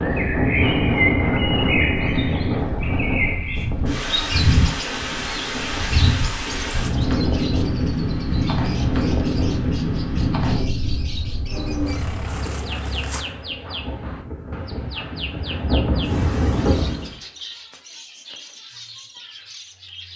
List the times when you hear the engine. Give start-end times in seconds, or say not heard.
10.8-13.2.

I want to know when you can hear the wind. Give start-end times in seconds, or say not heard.
0.0-17.1.